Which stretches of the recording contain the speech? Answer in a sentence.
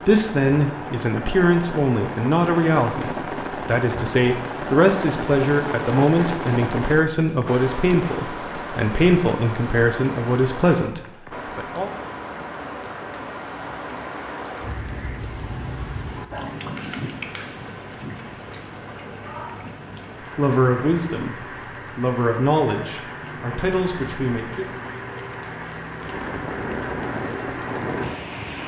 The speech can be heard from 0.1 to 11.9 s and from 20.4 to 24.6 s.